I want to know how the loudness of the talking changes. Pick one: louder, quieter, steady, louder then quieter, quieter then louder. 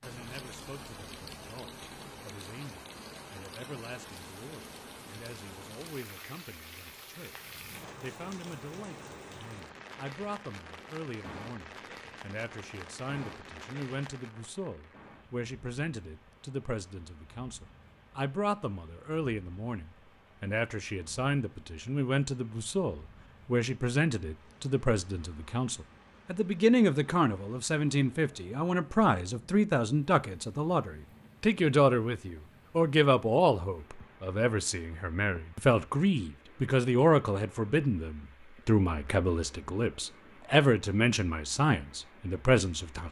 louder.